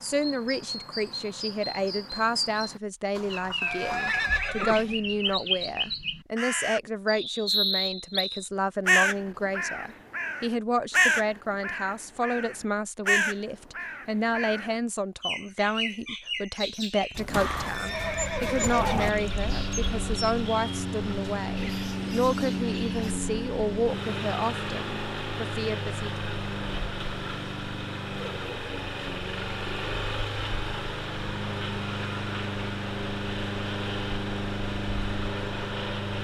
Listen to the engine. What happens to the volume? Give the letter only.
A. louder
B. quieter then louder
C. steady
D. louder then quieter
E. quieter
C.